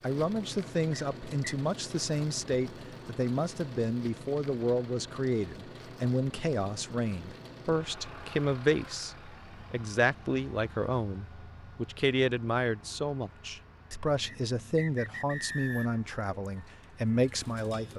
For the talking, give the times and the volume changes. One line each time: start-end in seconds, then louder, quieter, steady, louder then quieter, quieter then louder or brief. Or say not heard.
0.0-17.9 steady.